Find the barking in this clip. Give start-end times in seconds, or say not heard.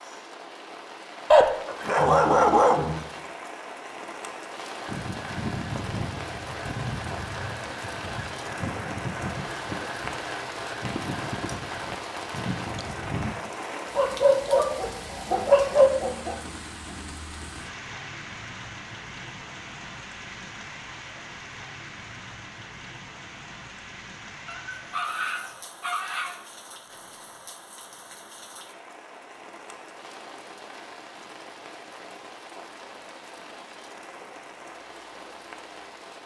1.3-3.0, 13.9-16.4, 24.4-26.4.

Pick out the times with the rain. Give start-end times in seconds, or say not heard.
0.0-36.2.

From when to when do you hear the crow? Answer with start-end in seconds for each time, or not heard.
4.8-13.3.